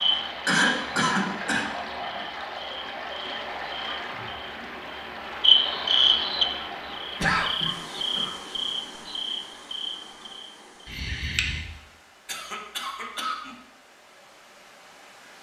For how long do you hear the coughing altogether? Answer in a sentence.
You can hear the coughing for 4 seconds altogether.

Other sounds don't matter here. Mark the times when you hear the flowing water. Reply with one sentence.
You can hear the flowing water from 0.0 to 15.3 s.